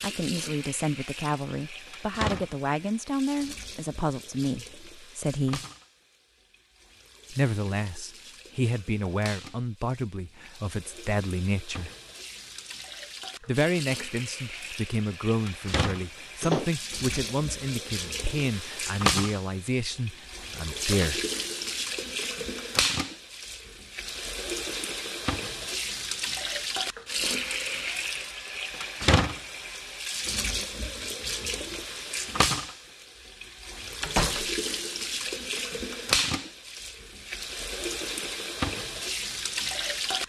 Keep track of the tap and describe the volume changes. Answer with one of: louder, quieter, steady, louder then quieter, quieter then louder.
louder.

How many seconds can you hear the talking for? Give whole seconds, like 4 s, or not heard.
18 s.